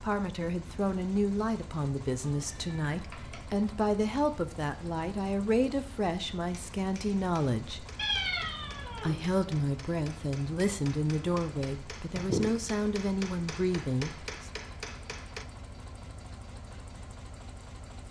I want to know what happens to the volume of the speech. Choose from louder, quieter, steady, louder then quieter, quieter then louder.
steady.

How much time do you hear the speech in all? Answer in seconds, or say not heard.
13 s.